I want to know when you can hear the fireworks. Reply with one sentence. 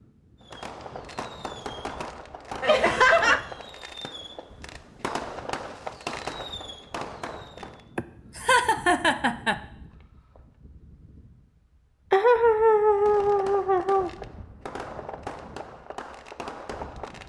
You can hear the fireworks from 0.5 to 7.9 s and from 12.9 to 17.2 s.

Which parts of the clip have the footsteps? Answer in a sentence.
You can't hear the footsteps here.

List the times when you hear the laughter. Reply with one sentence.
You can hear the laughter from 2.6 to 3.5 s, from 8.0 to 9.6 s and from 12.1 to 14.1 s.